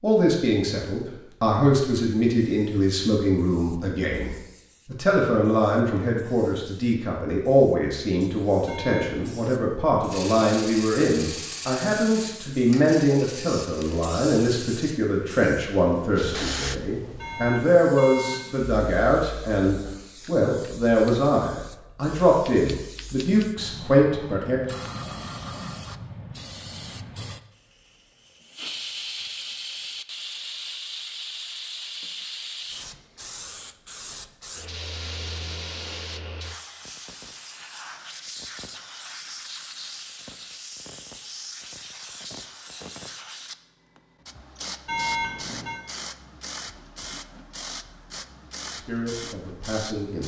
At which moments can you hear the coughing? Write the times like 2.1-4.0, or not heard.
not heard.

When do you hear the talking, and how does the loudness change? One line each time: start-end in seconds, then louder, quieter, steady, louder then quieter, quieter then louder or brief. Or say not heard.
0.0-24.6 steady
48.6-50.2 brief.